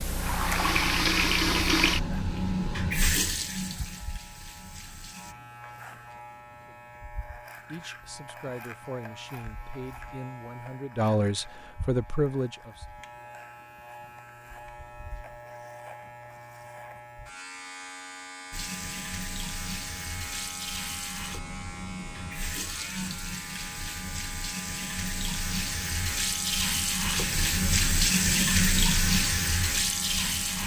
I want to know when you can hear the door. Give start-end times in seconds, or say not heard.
not heard.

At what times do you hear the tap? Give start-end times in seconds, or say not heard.
0.0-5.3, 18.5-30.6.